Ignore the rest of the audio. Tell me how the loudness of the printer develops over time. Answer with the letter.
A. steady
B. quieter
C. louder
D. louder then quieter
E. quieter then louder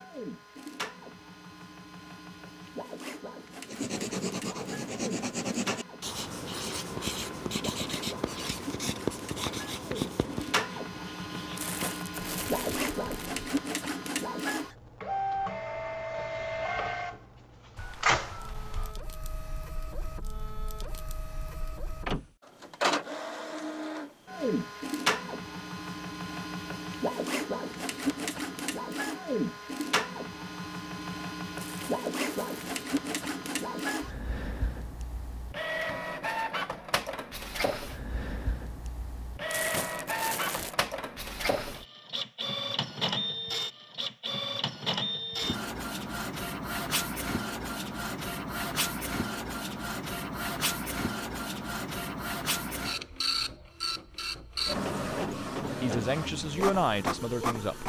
C.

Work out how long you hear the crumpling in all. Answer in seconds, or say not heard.
4 s.